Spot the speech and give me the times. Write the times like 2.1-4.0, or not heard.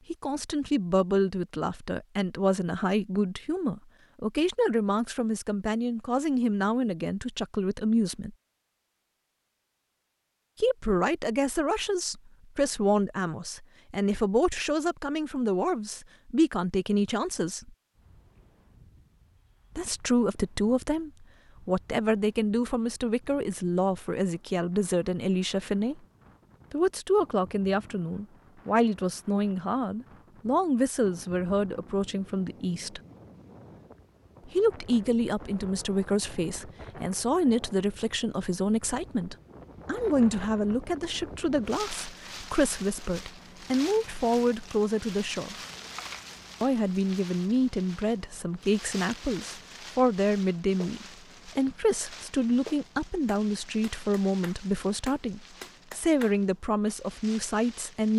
0.1-8.3, 10.6-17.7, 19.8-26.0, 26.7-33.0, 34.5-45.5, 46.6-58.1.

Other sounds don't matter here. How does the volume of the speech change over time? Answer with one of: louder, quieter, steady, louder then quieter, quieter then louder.
steady.